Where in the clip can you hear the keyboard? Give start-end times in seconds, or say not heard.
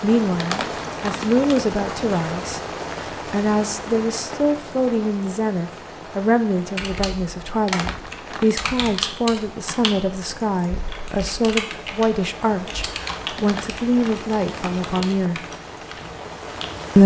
6.6-16.9.